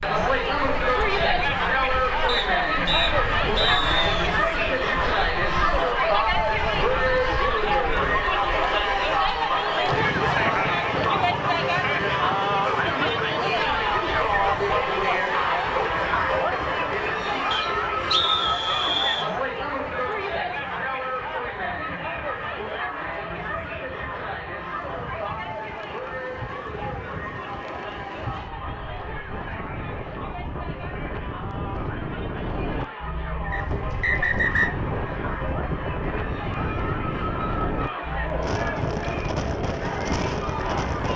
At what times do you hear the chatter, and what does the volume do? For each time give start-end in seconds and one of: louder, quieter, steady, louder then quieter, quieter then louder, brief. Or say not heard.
0.0-41.1 quieter.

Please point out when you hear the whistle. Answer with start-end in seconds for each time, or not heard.
2.2-4.3, 17.5-19.3, 33.5-34.7.